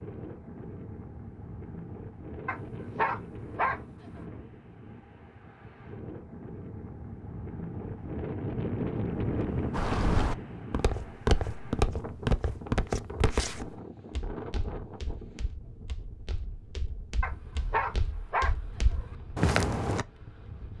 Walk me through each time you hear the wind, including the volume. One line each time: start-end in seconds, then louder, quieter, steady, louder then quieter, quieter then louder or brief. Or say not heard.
0.0-20.7 louder then quieter.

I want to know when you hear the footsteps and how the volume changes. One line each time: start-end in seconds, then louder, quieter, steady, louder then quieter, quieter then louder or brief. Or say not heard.
9.7-20.1 quieter then louder.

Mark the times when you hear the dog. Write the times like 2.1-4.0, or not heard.
2.5-3.8, 17.2-19.1.